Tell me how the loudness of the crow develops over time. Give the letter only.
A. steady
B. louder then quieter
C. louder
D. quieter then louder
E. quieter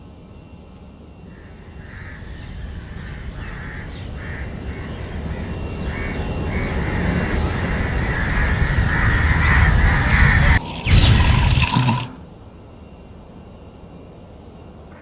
C.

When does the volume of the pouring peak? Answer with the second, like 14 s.
12 s.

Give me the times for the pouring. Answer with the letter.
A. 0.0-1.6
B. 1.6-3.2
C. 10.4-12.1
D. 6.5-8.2
C.